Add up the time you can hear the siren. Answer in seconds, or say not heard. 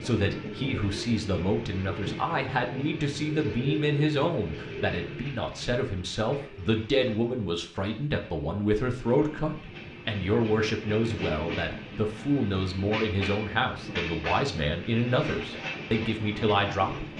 not heard.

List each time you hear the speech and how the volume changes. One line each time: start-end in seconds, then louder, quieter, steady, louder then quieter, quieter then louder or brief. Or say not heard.
0.0-17.1 steady.